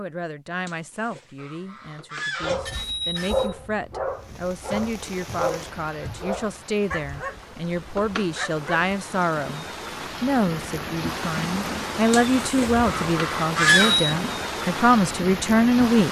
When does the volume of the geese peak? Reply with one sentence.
The loudest moment of the geese is at 14 seconds.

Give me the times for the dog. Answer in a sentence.
The dog can be heard from 2.4 to 8.9 s.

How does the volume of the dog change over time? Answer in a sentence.
The volume of the dog goes down.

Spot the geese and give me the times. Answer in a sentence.
You can hear the geese from 0.7 to 3.3 s and from 12.1 to 14.0 s.